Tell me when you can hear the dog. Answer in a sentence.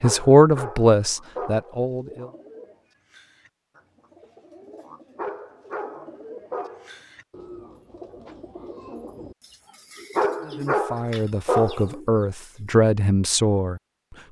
The dog can be heard from 0.0 to 1.8 s, from 5.2 to 7.0 s and from 10.2 to 11.9 s.